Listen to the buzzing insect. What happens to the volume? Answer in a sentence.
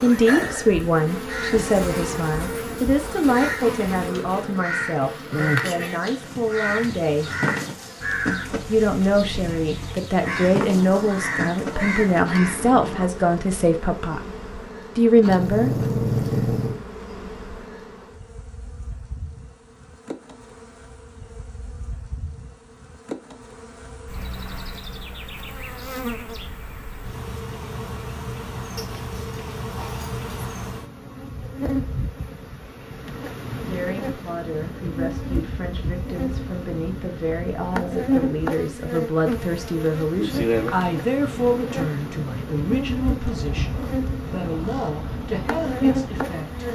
The loudness of the buzzing insect goes down, then up.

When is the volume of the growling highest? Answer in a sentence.
The volume of the growling peaks at 16 seconds.